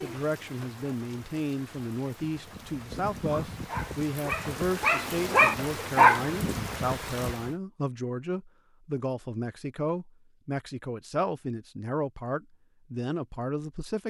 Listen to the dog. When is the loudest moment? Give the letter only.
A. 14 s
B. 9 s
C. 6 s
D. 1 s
C.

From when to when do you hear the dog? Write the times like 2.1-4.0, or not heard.
3.3-6.4.